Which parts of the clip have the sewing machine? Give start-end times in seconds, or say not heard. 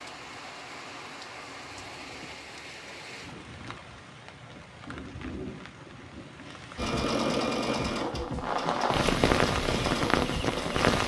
6.8-10.9.